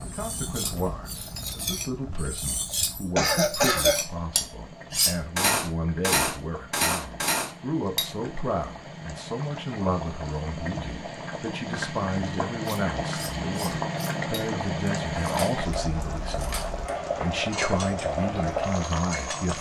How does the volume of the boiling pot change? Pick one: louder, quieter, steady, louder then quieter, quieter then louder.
louder.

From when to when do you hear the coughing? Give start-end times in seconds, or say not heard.
2.7-4.0.